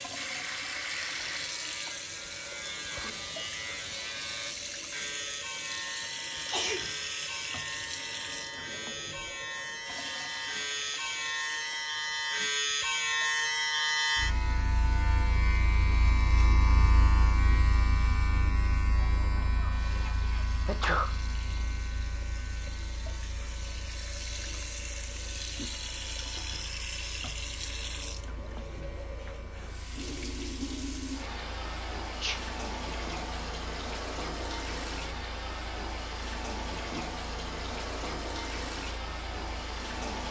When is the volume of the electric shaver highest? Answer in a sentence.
The loudest moment of the electric shaver is at 14 seconds.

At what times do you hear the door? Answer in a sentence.
You can't hear the door here.